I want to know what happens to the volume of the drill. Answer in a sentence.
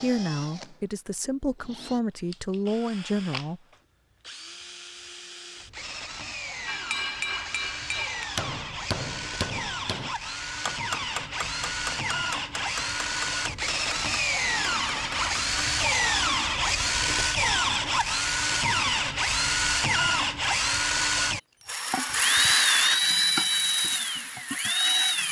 The volume of the drill goes up.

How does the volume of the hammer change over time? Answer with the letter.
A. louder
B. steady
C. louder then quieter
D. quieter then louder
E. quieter
E.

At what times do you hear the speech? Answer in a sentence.
The speech can be heard from 0.0 to 3.6 s.